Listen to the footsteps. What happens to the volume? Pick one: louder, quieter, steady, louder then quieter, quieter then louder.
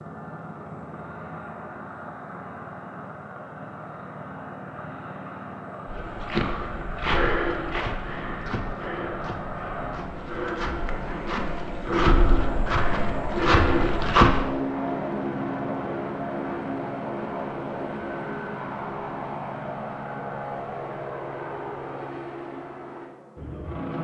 quieter then louder.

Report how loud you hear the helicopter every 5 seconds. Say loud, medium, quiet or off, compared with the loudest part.
medium, medium, loud, loud, loud.